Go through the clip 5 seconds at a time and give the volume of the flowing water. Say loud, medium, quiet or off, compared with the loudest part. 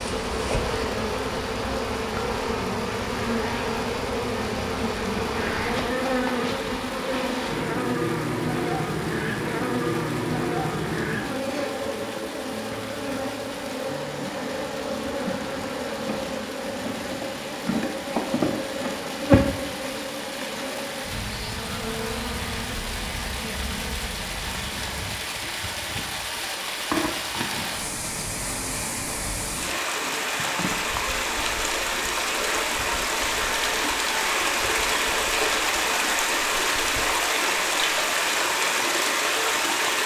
quiet, quiet, quiet, quiet, medium, medium, loud, loud.